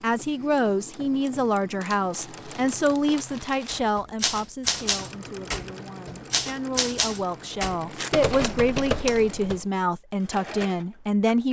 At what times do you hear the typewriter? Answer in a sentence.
You can hear the typewriter from 3.6 to 9.6 s.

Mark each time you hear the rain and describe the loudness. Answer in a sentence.
The rain can't be heard in this clip.